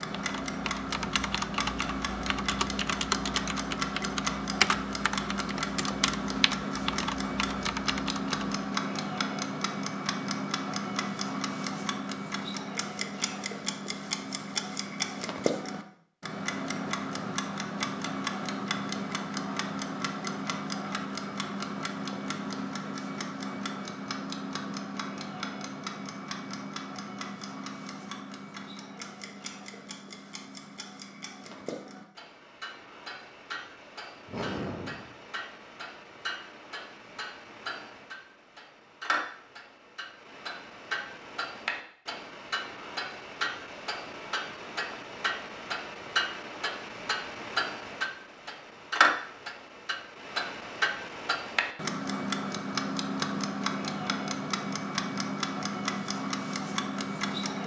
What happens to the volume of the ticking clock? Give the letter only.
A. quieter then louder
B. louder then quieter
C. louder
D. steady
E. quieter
A.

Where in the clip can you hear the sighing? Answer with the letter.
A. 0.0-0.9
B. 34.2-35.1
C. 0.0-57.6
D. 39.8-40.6
B.